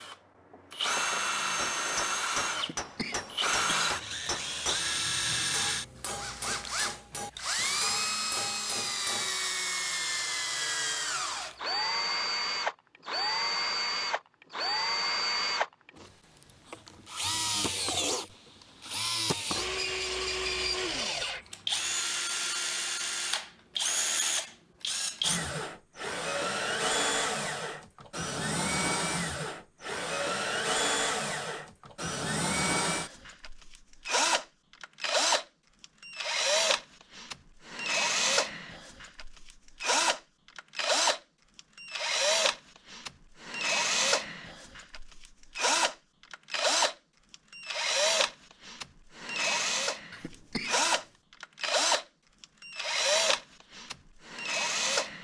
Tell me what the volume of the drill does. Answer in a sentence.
The loudness of the drill stays about the same.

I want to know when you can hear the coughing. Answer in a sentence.
The coughing can be heard from 2.5 to 4.3 s and from 50.1 to 50.9 s.